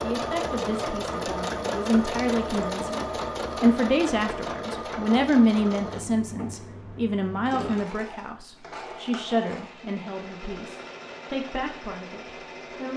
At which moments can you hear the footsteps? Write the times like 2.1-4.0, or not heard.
not heard.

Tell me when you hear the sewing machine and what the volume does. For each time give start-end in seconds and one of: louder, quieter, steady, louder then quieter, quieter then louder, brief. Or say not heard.
0.0-12.9 quieter.